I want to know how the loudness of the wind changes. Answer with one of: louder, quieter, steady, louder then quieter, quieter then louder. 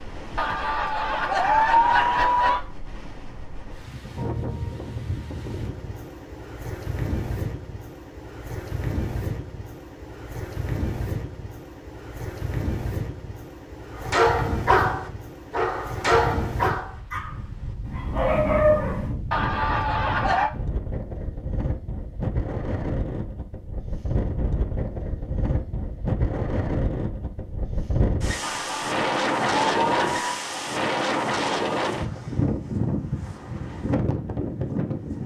louder.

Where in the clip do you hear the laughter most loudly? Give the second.
2 s.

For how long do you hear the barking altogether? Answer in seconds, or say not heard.
5 s.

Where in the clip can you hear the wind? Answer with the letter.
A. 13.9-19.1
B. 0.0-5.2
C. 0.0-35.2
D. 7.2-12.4
C.